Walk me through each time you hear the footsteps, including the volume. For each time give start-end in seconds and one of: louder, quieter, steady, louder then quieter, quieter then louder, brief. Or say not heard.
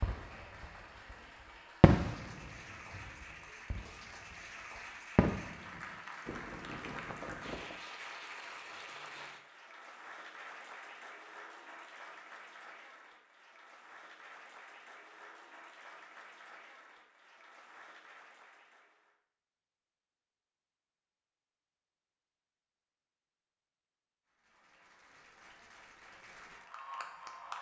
not heard.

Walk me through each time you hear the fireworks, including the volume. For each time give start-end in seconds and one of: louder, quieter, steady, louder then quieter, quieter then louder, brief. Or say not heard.
0.0-1.1 brief
1.8-7.8 louder then quieter.